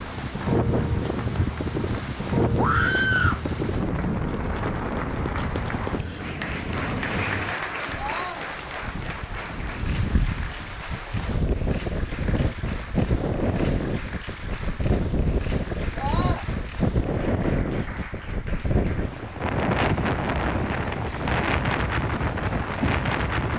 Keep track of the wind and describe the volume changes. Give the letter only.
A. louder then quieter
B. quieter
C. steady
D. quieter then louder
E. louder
D.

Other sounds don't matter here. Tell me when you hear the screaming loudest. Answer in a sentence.
The loudest moment of the screaming is at 3 seconds.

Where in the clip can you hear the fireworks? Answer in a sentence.
The fireworks can't be heard in this clip.